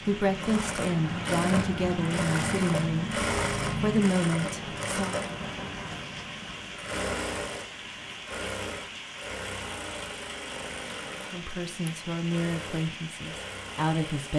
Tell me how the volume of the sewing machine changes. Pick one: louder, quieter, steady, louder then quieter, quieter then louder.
quieter.